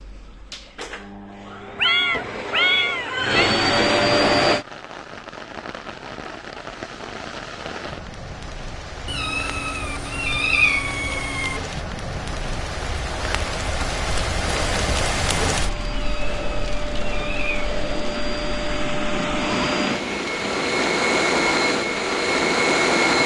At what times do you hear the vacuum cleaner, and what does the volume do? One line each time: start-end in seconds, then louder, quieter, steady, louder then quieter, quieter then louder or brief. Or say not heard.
0.0-4.7 louder
14.3-23.2 louder.